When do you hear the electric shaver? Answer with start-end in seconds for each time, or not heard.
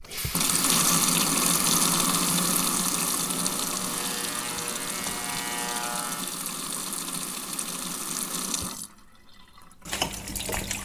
3.2-6.4.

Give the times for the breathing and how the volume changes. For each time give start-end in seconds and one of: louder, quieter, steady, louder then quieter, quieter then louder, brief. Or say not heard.
not heard.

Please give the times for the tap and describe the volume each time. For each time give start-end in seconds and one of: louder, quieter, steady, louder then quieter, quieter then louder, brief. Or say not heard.
0.0-10.8 quieter.